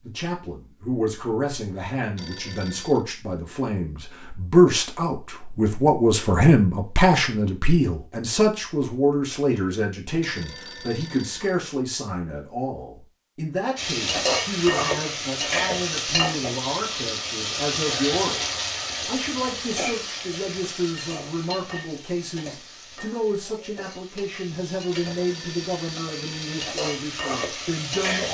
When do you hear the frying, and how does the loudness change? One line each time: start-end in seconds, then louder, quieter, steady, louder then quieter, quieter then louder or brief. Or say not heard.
13.8-28.3 quieter then louder.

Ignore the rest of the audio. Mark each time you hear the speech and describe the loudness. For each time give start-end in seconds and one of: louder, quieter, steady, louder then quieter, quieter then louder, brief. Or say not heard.
0.0-28.3 quieter.